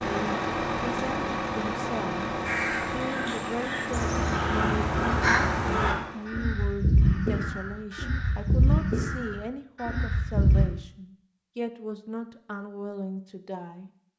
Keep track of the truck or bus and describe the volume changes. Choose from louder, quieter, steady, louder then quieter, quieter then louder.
quieter.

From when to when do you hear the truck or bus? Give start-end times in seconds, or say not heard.
0.0-6.4.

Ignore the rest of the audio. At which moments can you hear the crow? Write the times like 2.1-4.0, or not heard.
2.5-10.7.